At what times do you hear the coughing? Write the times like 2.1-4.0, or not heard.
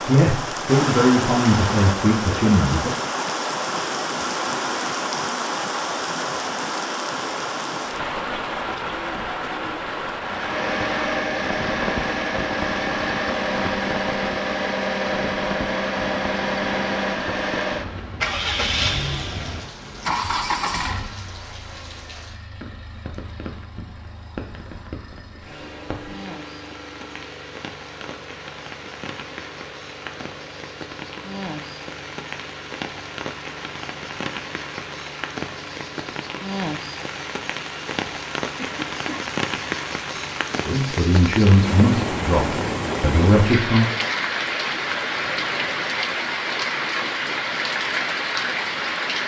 38.5-39.2.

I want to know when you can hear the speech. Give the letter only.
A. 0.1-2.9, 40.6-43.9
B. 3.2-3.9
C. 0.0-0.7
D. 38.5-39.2
A.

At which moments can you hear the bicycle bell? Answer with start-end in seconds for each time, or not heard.
not heard.